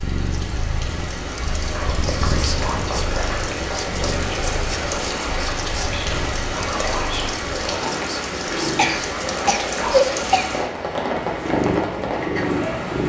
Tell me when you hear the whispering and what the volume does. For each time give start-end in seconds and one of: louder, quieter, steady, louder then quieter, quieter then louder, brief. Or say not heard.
1.7-10.3 steady.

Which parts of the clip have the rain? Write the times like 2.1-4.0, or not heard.
0.0-13.0.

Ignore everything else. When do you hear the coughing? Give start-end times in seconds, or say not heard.
8.8-10.4.